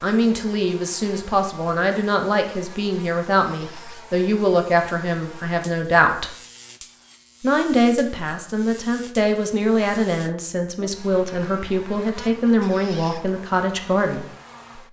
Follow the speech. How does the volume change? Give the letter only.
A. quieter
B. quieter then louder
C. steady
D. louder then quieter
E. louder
C.